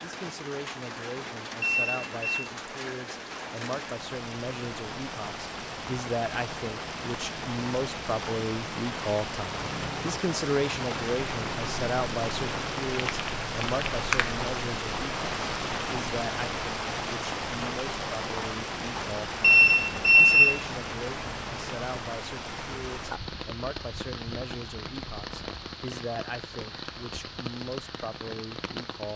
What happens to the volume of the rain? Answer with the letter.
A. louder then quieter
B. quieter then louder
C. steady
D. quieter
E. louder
A.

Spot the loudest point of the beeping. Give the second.
20 s.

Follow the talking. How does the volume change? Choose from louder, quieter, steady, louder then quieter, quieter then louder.
louder then quieter.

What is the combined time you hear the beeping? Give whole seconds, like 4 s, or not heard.
2 s.